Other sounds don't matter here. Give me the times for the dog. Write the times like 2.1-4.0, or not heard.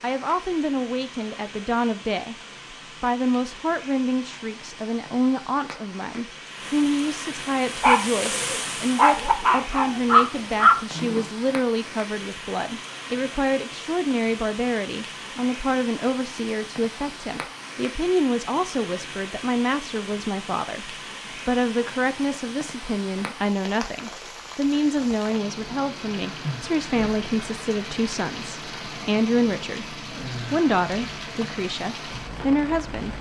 7.8-11.2.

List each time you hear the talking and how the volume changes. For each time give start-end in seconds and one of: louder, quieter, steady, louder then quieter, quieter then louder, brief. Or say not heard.
0.0-2.4 brief
3.0-33.1 steady.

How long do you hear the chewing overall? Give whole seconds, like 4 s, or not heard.
not heard.